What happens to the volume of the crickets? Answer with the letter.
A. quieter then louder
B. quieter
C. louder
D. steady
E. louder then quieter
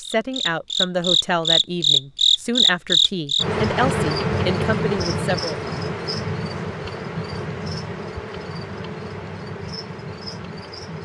B.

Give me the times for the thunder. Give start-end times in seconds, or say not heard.
not heard.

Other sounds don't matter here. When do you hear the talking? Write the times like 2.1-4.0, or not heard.
0.0-5.8.